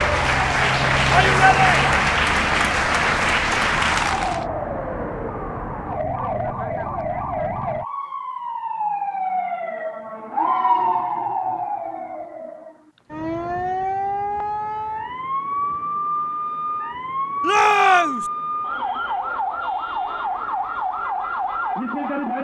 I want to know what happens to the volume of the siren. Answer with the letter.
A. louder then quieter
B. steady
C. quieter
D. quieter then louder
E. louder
B.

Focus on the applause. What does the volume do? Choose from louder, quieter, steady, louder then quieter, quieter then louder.
steady.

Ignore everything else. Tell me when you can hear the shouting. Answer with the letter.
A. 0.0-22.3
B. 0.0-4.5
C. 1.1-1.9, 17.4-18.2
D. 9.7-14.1
C.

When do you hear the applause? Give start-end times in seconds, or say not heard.
0.0-4.5.